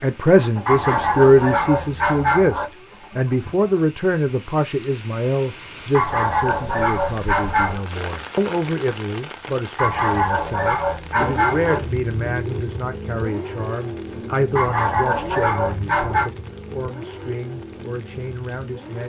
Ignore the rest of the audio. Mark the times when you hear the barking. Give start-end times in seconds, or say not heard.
0.7-2.6, 5.9-7.8, 9.8-11.8, 14.6-16.3.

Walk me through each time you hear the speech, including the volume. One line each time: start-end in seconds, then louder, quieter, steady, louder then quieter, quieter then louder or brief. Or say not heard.
0.0-19.0 quieter.